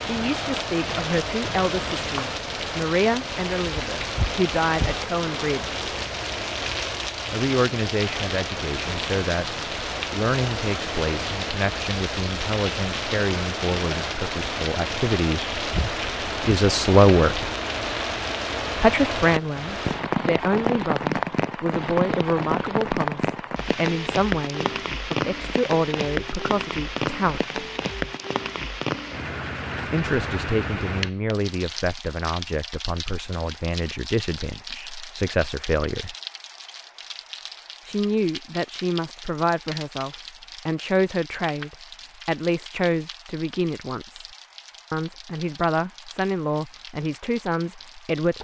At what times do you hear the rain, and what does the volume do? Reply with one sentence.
You can hear the rain from 0.0 to 48.3 s, getting quieter.